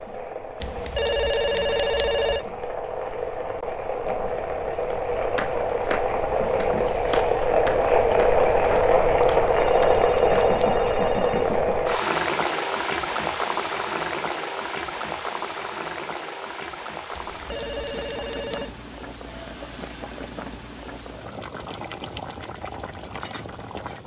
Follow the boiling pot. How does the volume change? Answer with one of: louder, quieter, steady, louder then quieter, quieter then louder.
louder then quieter.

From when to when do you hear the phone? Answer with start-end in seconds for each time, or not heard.
0.6-2.5, 9.2-11.7, 17.1-18.7.